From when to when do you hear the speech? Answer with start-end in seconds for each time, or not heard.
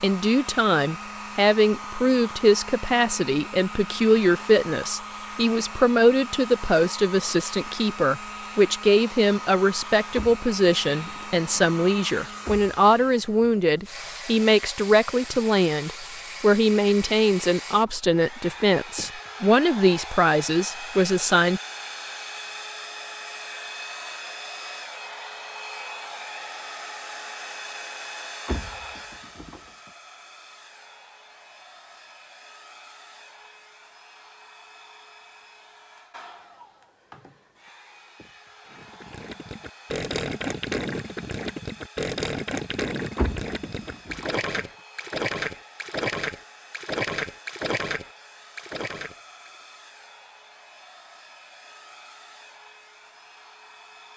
0.0-21.6.